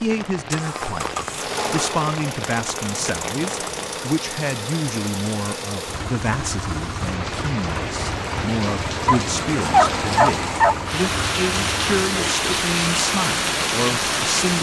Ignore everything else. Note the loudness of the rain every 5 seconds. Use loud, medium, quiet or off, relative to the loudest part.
medium, medium, loud.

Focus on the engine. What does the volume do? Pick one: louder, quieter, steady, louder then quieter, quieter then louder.
steady.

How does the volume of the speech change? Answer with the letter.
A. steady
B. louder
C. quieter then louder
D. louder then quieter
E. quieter
A.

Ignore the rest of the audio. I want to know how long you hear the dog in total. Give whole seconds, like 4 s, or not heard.
2 s.